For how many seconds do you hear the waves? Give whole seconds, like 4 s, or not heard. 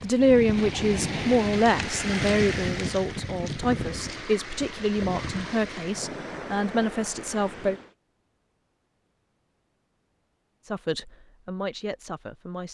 8 s.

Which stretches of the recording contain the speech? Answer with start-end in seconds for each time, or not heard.
0.0-7.8, 10.6-12.6.